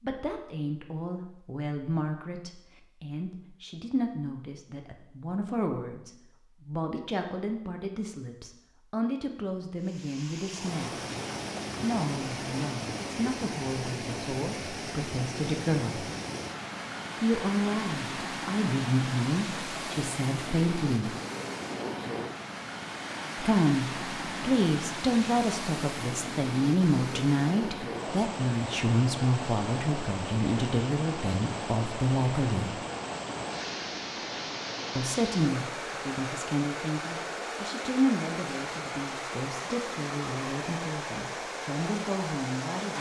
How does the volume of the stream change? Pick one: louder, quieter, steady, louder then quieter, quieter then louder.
steady.